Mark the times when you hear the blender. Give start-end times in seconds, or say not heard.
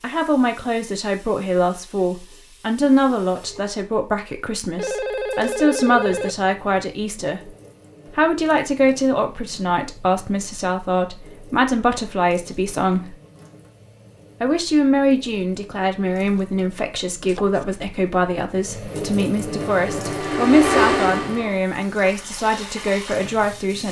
19.3-21.6.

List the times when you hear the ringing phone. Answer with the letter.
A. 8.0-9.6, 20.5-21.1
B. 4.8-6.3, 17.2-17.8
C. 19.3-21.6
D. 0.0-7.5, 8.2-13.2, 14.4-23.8
B.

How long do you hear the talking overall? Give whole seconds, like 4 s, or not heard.
22 s.